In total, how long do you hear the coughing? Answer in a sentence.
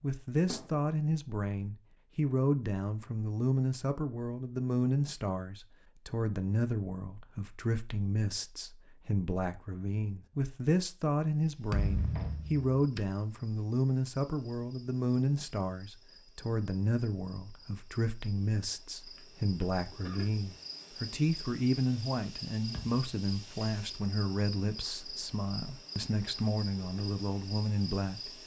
You can hear the coughing for 2 seconds altogether.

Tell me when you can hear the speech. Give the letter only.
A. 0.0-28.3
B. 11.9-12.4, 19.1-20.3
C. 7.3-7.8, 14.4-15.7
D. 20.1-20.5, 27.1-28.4
A.